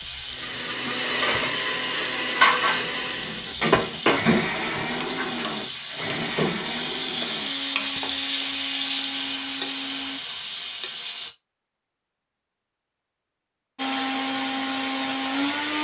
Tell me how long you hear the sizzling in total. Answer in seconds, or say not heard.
11 s.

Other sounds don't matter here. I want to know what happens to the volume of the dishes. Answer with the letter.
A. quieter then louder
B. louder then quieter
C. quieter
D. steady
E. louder
B.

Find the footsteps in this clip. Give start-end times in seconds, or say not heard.
not heard.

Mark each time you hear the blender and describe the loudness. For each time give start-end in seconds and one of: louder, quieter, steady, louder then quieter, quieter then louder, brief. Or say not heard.
0.0-10.2 quieter
13.8-15.8 brief.